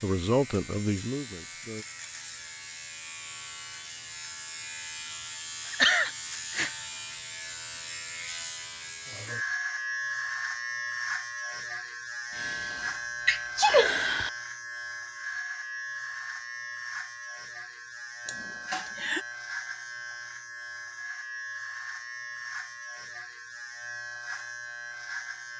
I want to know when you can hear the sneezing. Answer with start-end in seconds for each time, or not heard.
5.7-6.7, 12.3-14.3, 18.2-19.2.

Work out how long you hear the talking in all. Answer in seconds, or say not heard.
2 s.